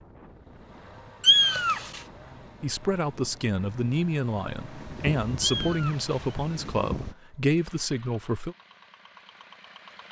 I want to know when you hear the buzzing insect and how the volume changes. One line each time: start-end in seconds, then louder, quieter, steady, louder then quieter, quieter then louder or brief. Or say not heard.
not heard.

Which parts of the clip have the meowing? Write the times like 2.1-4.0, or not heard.
1.2-2.0, 5.4-6.3.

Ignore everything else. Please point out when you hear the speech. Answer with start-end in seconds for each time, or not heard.
2.6-8.6.